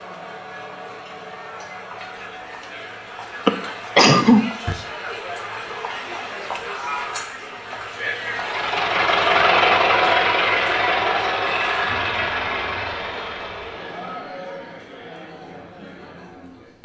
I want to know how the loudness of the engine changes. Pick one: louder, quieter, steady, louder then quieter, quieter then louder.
quieter.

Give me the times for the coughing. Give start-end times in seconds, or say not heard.
3.5-4.8.